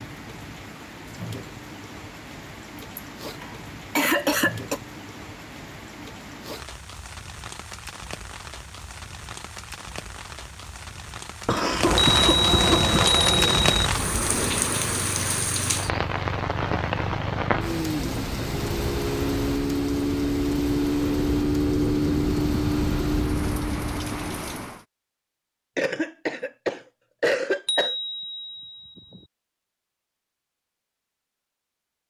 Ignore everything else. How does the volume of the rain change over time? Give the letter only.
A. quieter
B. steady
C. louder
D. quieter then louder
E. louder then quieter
E.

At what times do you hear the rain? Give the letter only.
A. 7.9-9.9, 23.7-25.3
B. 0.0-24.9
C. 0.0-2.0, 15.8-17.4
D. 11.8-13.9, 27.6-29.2
B.